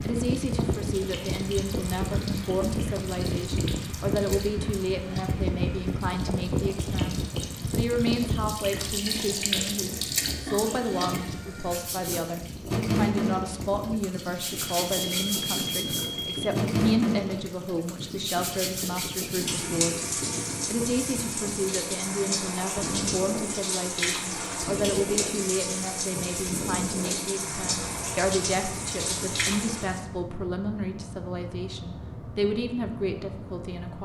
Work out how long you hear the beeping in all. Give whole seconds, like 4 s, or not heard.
2 s.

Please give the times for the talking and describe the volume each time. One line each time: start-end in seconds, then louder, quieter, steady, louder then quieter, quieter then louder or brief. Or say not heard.
0.0-34.0 steady.